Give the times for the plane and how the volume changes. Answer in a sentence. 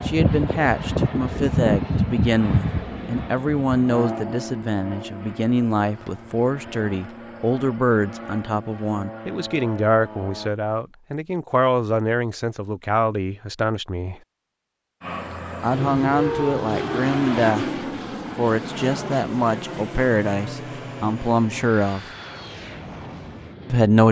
You can hear the plane from 0.0 to 10.6 s, getting quieter; and from 15.0 to 24.0 s, getting quieter.